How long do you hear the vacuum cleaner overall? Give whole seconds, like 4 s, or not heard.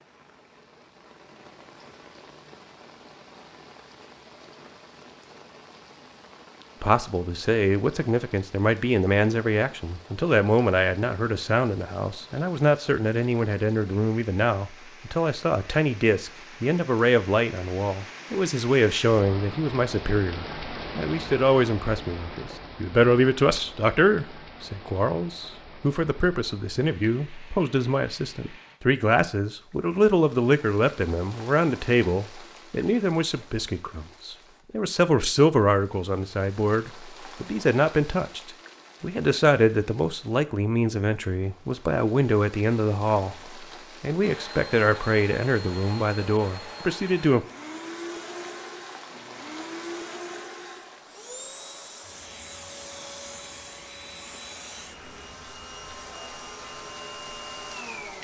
14 s.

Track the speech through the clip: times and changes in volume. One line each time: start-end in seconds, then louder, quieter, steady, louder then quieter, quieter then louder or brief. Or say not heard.
6.8-47.5 steady.